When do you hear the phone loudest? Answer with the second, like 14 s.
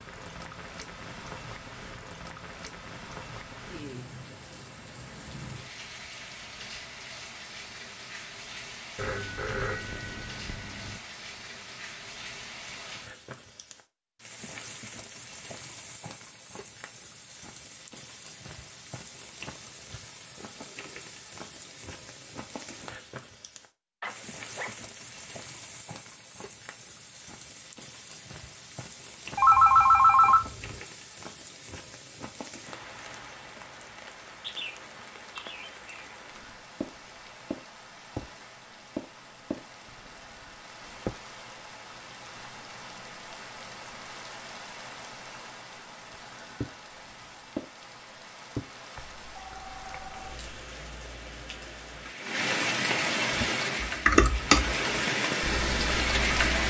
30 s.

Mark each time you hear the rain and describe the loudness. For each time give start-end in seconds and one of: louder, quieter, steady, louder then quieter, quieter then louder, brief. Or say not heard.
0.0-56.6 louder.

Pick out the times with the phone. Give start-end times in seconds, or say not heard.
8.9-11.0, 29.4-30.4, 49.0-50.4.